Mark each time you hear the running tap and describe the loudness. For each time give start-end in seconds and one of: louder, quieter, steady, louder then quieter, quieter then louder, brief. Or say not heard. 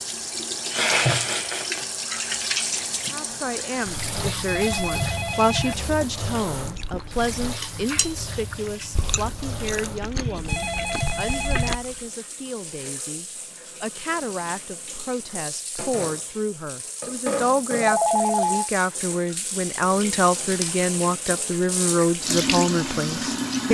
0.0-23.7 quieter then louder.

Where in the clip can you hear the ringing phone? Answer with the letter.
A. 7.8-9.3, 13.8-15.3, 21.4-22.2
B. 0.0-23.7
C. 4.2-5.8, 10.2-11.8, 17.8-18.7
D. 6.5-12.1
C.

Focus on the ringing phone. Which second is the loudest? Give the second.
18 s.